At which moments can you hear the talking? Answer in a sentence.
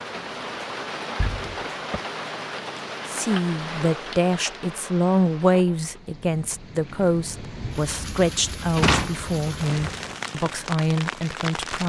You can hear the talking from 3.0 to 11.8 s.